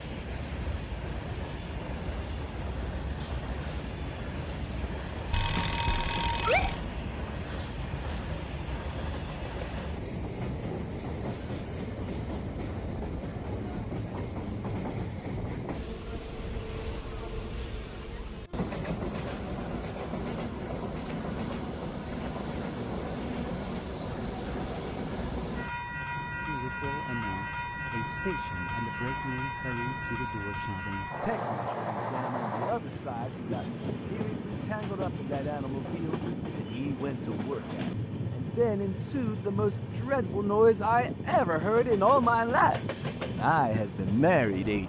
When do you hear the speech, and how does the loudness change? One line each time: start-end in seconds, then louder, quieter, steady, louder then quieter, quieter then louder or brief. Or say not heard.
26.4-44.8 louder.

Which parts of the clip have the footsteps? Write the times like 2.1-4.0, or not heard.
not heard.